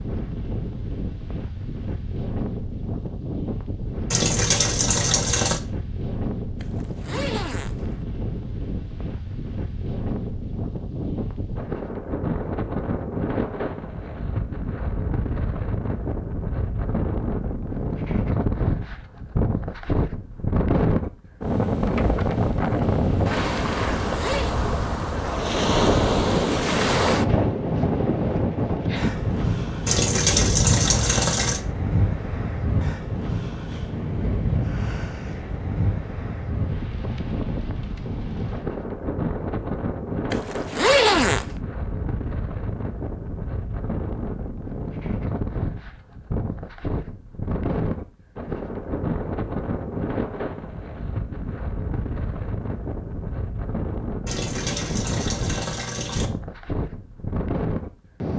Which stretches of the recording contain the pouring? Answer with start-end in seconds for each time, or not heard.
4.1-5.6, 29.9-31.6, 54.2-56.3.